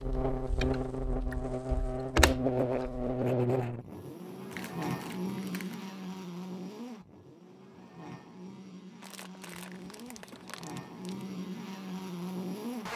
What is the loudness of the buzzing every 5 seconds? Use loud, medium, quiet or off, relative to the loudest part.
loud, medium, medium.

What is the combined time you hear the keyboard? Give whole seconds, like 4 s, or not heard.
3 s.